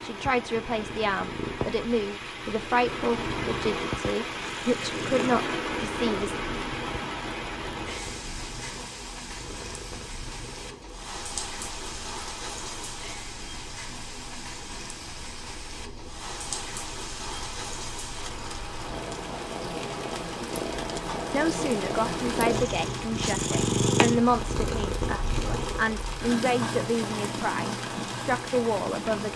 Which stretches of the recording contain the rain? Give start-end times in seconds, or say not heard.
0.0-29.3.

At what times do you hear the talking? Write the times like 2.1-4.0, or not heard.
0.0-6.3, 21.3-29.3.